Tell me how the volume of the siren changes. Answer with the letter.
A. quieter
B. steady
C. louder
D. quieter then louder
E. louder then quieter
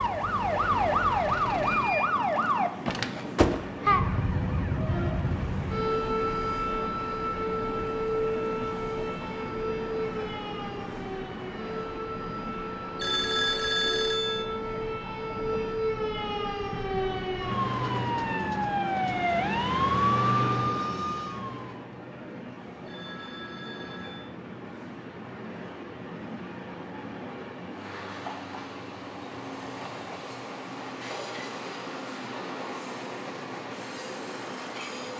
D.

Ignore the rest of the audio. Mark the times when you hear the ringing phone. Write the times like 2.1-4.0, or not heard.
12.9-14.4, 22.9-24.2.